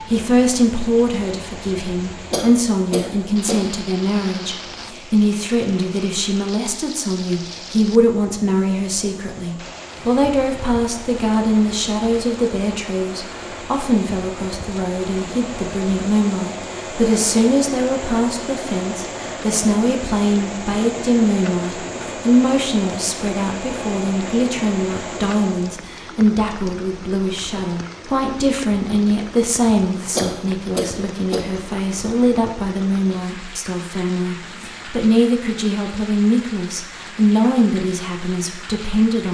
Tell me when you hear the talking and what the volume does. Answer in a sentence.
You can hear the talking from 0.0 to 39.2 s, at a steady volume.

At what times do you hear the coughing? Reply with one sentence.
The coughing can be heard from 2.3 to 3.6 s and from 30.1 to 31.4 s.